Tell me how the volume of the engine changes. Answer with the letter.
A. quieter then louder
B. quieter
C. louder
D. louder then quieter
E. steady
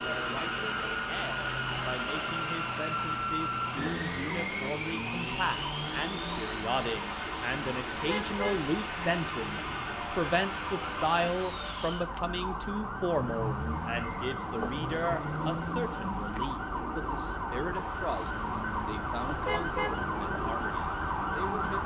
B.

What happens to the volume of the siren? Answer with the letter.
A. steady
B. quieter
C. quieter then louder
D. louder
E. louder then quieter
D.